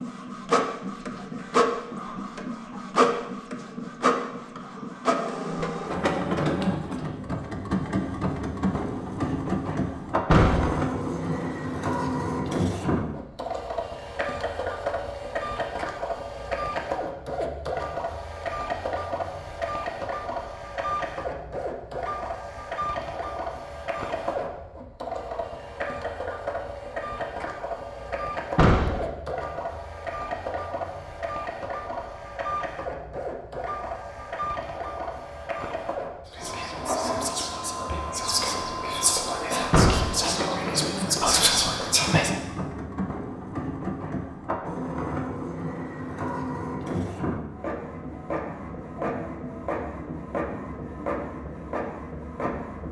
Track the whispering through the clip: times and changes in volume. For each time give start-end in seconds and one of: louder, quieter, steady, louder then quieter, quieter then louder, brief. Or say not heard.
36.2-42.3 louder.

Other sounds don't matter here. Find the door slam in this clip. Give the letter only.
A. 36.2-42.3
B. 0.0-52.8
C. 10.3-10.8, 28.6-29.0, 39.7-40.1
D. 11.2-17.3
C.